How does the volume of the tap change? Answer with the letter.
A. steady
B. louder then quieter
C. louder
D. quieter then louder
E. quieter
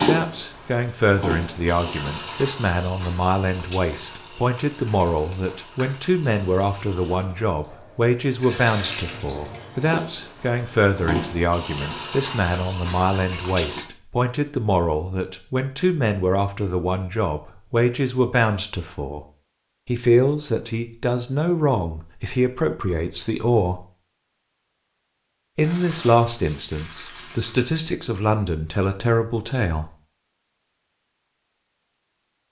D.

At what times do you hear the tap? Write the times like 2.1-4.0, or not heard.
0.0-13.8.